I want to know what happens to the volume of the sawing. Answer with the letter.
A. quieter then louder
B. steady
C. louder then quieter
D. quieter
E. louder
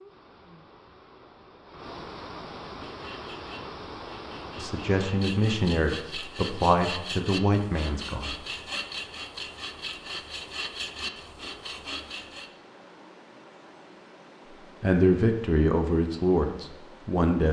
E.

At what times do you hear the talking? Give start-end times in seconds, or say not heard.
4.5-8.3, 14.8-17.4.